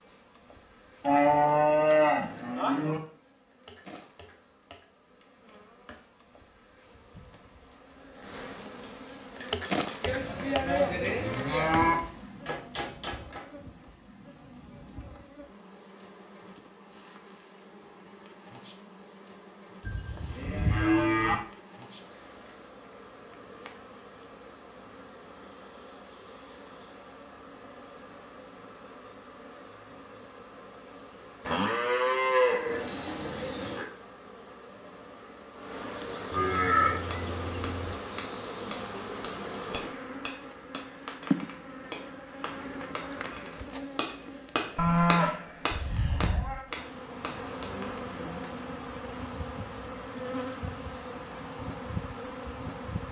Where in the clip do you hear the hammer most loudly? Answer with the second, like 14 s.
45 s.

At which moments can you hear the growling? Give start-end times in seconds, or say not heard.
not heard.